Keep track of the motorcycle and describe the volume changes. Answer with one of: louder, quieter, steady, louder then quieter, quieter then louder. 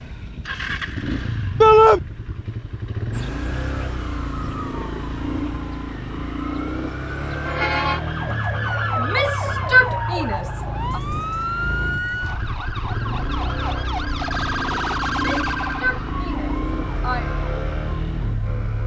steady.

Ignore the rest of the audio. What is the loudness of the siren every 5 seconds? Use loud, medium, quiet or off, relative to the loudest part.
medium, loud, loud, loud.